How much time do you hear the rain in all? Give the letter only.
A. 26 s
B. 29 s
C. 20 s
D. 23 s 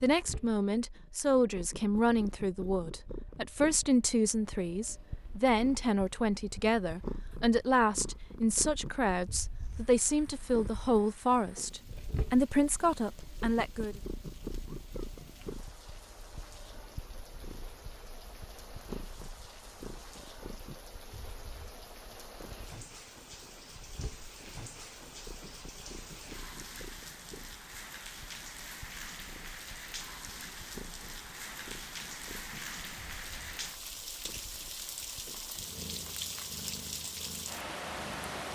B.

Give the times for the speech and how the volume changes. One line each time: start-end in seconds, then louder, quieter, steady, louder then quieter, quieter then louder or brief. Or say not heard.
0.0-13.9 steady.